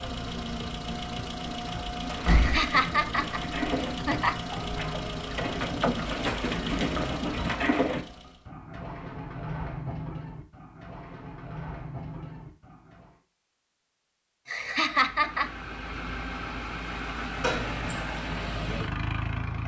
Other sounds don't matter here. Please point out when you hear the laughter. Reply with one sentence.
The laughter can be heard from 2.2 to 4.3 s and from 14.4 to 15.5 s.